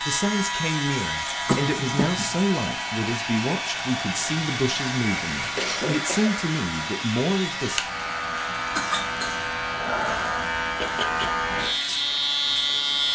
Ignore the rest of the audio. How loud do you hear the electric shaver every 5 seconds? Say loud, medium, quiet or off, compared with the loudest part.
medium, medium, loud.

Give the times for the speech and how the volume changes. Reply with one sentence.
The speech can be heard from 0.0 to 7.9 s, at a steady volume.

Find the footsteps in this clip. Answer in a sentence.
The footsteps can't be heard in this clip.